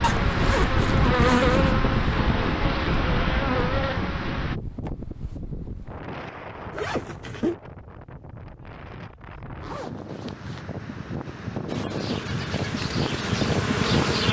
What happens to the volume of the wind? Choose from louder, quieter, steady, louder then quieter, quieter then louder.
quieter then louder.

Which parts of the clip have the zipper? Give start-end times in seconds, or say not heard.
0.0-1.8, 6.7-7.5, 9.6-10.7.